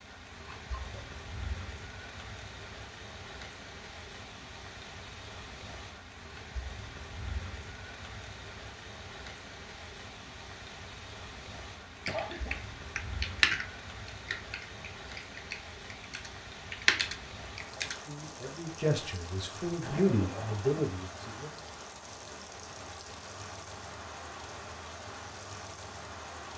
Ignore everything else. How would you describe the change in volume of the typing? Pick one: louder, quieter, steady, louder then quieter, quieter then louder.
quieter then louder.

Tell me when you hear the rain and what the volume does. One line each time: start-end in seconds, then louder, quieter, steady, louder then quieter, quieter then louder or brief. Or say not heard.
0.0-26.5 steady.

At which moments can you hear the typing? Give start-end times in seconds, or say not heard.
12.1-18.0.